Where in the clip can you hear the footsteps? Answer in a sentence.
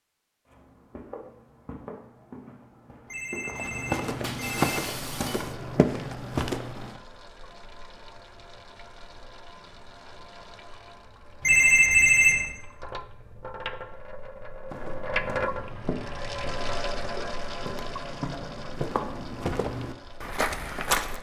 You can hear the footsteps from 0.5 to 7.0 s and from 14.7 to 21.1 s.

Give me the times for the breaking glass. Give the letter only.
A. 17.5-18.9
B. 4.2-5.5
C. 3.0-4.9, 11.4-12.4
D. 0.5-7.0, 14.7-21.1
B.